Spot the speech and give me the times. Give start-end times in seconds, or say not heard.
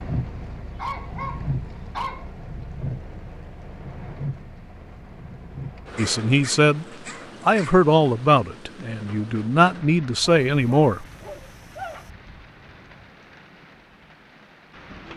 6.0-6.8, 7.5-11.0.